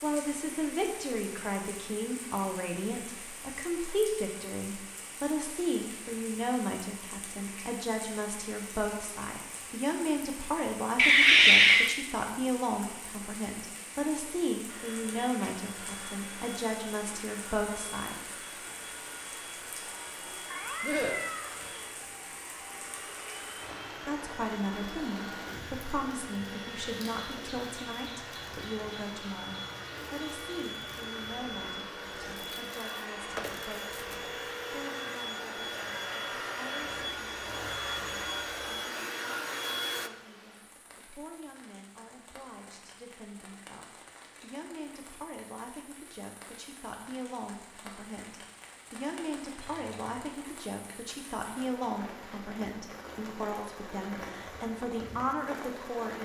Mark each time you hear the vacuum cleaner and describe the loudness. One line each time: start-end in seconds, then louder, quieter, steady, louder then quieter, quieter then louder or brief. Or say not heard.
14.7-40.1 louder.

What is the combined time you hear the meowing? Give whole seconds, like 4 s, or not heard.
3 s.